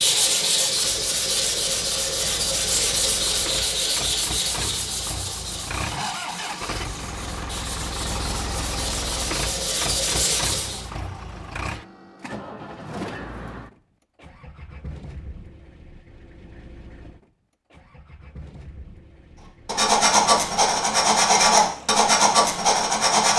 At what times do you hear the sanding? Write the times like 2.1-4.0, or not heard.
0.0-10.8, 19.6-23.3.